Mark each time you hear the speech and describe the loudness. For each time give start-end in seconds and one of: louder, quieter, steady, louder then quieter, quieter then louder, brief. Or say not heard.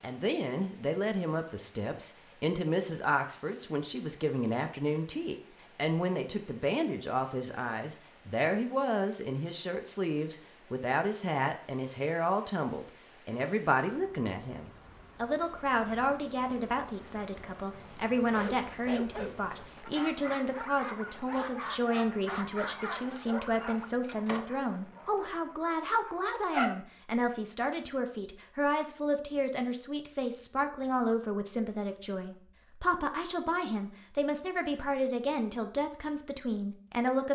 0.0-37.3 steady.